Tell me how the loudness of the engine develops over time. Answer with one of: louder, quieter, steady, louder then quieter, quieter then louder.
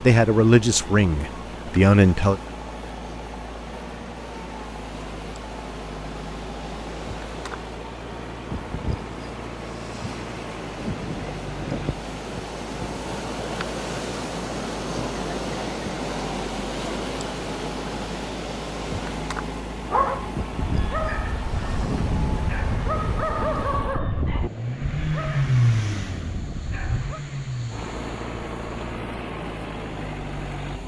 louder.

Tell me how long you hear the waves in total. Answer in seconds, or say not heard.
31 s.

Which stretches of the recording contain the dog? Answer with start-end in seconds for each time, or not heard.
19.8-27.2.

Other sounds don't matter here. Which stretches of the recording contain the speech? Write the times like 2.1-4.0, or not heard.
0.0-2.4.